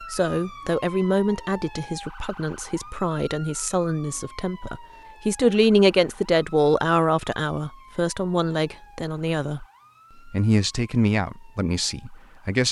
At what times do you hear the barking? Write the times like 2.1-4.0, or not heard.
not heard.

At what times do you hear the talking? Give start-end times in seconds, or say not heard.
0.0-9.7, 10.2-12.6.